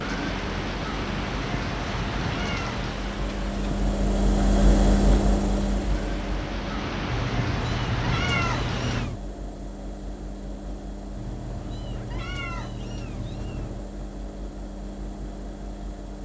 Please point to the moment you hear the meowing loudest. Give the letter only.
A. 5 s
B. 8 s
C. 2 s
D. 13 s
B.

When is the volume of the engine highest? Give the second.
5 s.